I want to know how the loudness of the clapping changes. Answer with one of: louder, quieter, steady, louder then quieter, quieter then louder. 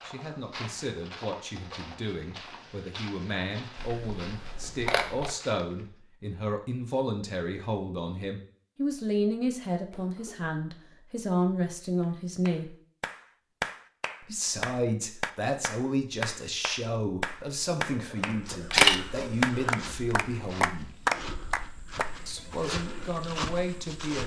louder then quieter.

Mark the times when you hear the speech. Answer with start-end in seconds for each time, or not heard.
0.0-12.8, 14.2-21.0, 22.2-24.2.